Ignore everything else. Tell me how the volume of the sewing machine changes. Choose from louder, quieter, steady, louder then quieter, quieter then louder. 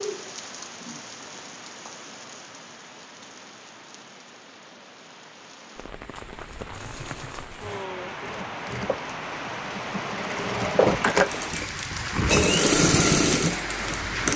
louder.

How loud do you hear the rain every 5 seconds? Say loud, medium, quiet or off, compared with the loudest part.
medium, medium, loud.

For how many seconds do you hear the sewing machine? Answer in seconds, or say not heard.
8 s.